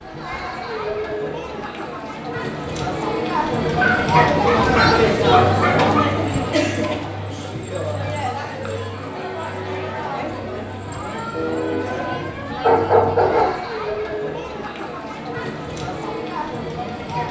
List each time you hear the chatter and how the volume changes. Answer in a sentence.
The chatter can be heard from 0.0 to 17.2 s, getting louder then quieter.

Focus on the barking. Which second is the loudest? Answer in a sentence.
The loudest moment of the barking is at 13 seconds.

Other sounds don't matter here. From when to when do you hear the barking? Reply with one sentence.
You can hear the barking from 3.6 to 6.1 s and from 11.3 to 13.6 s.